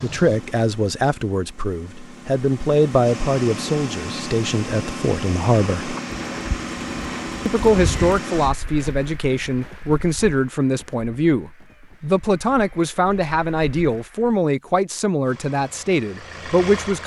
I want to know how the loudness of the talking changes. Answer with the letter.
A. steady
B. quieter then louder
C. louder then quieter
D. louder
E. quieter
A.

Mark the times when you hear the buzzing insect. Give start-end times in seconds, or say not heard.
not heard.